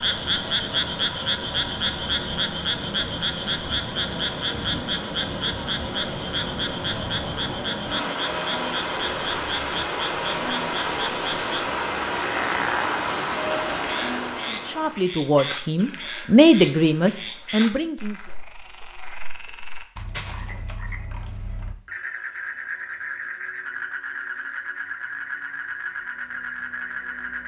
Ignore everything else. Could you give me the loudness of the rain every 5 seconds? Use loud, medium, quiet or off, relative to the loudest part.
medium, loud, loud, off, off, off.